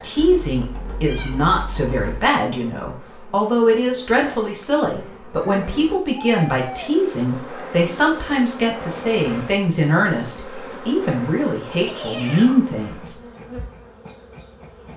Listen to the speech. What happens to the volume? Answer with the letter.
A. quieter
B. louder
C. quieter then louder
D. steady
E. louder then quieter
D.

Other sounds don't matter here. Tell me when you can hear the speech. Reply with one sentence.
You can hear the speech from 0.0 to 13.2 s.